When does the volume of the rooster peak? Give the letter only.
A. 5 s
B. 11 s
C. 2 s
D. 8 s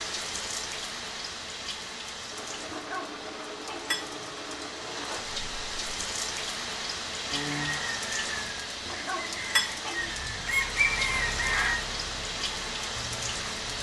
B.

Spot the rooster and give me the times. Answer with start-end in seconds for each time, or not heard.
7.3-11.8.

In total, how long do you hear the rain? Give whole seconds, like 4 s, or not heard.
14 s.